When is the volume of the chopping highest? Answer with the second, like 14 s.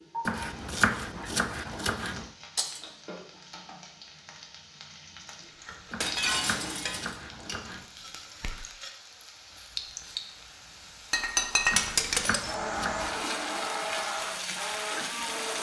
1 s.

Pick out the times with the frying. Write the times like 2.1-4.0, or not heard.
0.0-15.5.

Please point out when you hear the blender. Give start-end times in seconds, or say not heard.
12.3-15.5.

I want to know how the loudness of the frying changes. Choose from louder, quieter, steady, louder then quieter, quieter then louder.
louder.